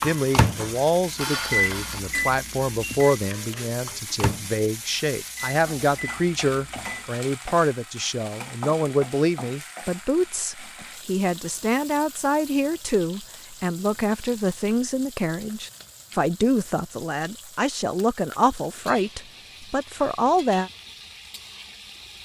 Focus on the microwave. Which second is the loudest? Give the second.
2 s.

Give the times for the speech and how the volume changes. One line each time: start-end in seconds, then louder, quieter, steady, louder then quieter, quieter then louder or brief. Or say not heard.
0.0-20.7 steady.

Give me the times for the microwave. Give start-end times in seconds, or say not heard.
0.0-7.0.